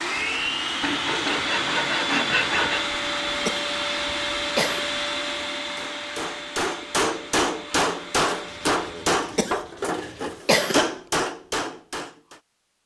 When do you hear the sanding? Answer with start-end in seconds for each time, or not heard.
0.8-3.0, 8.4-10.4.